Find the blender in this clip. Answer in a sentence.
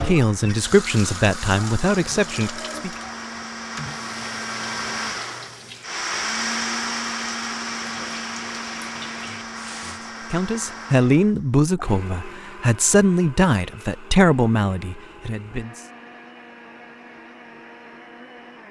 You can hear the blender from 0.1 to 18.6 s.